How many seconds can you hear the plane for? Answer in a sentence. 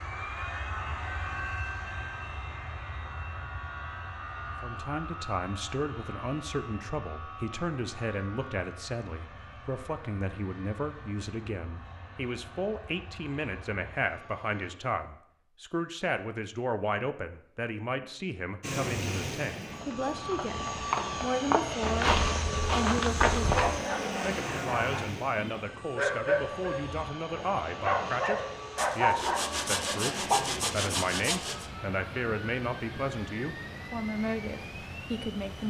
You can hear the plane for 32 seconds altogether.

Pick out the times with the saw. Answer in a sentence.
The saw can be heard from 28.8 to 31.7 s.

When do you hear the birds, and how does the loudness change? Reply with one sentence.
You can't hear the birds here.